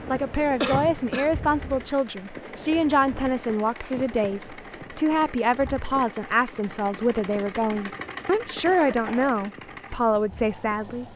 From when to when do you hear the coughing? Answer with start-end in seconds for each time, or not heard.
0.1-1.3, 8.7-9.3.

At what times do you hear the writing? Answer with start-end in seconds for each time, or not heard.
not heard.